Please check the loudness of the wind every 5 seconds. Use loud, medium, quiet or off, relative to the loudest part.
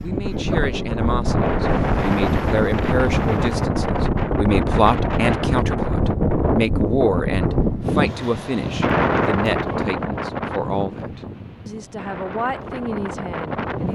loud, loud, medium.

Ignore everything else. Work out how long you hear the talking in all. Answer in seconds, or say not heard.
14 s.